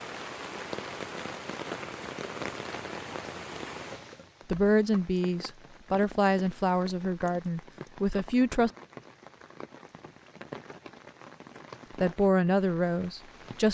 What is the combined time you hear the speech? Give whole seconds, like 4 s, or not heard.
6 s.